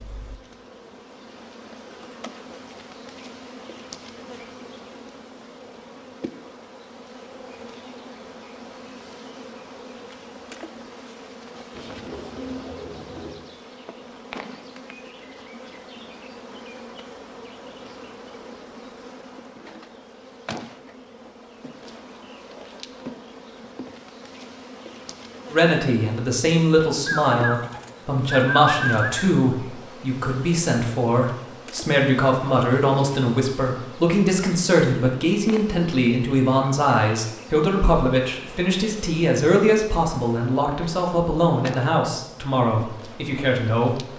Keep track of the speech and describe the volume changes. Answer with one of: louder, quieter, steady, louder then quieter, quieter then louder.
steady.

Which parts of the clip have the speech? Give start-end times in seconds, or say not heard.
25.5-44.1.